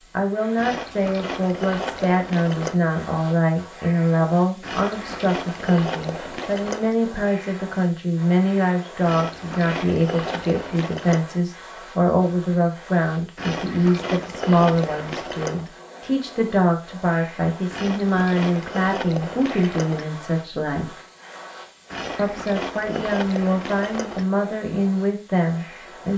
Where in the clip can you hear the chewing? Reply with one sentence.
The chewing can be heard from 0.6 to 2.8 s, from 4.6 to 7.0 s, from 9.0 to 11.2 s, from 13.3 to 15.7 s, from 17.7 to 20.1 s and from 21.9 to 24.2 s.